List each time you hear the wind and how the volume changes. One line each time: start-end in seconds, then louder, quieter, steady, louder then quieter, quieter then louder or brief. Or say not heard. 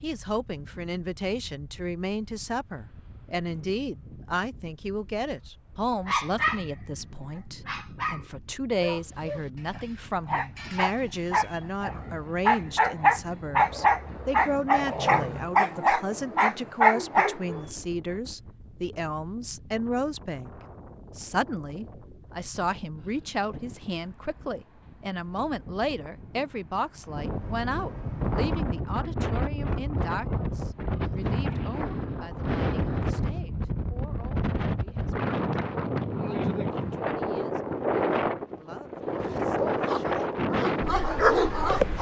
0.0-41.9 louder.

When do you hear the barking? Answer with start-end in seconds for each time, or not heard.
6.0-17.6, 39.2-41.9.